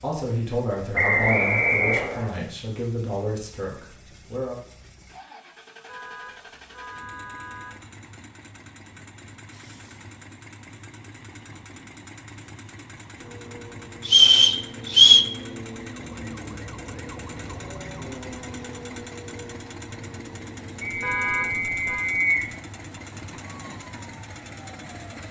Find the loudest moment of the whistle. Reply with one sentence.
The loudest moment of the whistle is at 15 seconds.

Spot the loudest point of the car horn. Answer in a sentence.
The volume of the car horn peaks at 21 seconds.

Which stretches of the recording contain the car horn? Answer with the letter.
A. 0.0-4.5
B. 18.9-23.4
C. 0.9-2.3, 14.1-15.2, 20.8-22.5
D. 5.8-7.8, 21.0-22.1
D.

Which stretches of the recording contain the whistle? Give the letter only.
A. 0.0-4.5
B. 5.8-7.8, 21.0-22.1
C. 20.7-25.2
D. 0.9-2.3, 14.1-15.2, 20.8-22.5
D.